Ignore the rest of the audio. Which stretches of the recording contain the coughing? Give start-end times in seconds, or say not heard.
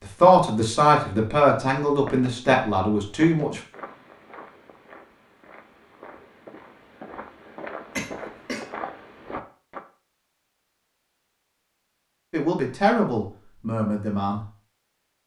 8.0-8.7.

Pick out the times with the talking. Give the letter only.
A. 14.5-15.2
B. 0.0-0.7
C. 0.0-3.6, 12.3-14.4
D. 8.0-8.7
C.